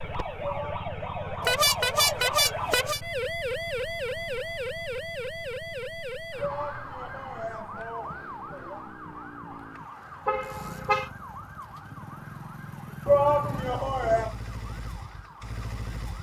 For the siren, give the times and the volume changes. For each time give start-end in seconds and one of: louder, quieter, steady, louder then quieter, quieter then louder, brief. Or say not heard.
0.0-16.1 quieter.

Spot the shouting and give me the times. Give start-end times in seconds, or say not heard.
0.4-2.1, 6.3-8.8, 13.1-14.3.